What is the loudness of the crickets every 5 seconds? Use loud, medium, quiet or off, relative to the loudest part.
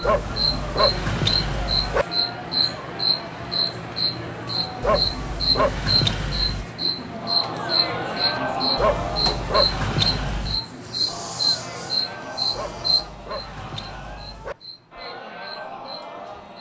loud, loud, loud, quiet.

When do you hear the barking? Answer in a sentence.
The barking can be heard from 0.0 to 2.0 s, from 4.8 to 6.7 s, from 8.8 to 10.6 s and from 12.5 to 14.6 s.